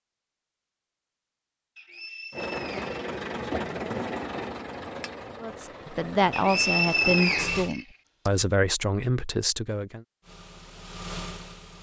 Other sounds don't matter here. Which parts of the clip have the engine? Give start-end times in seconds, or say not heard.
2.3-7.7, 10.2-11.7.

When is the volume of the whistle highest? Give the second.
7 s.